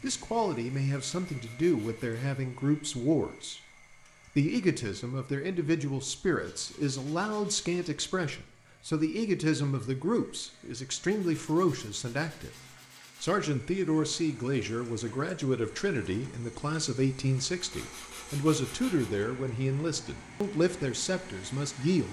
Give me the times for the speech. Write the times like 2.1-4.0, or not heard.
0.0-3.6, 4.3-12.5, 13.2-22.0.